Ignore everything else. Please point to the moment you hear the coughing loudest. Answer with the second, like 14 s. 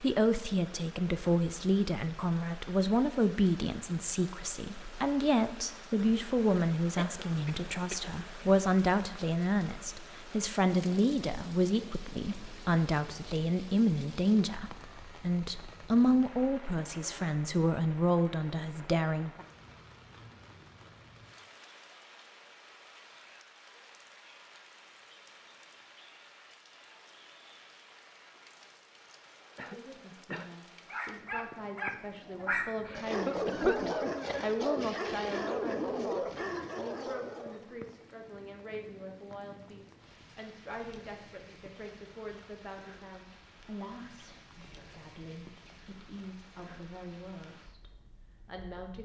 34 s.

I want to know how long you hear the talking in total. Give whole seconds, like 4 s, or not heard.
39 s.